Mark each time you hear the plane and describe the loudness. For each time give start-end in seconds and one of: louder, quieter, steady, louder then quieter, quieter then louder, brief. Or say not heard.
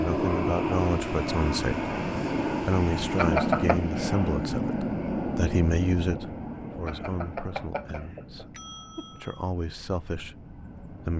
0.0-11.1 quieter.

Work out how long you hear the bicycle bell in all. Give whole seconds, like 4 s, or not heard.
3 s.